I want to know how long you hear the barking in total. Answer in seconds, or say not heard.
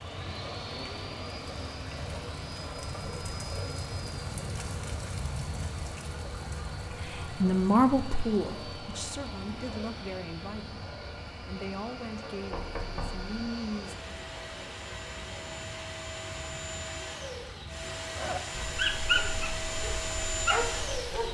3 s.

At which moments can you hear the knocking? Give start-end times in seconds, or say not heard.
12.5-13.3.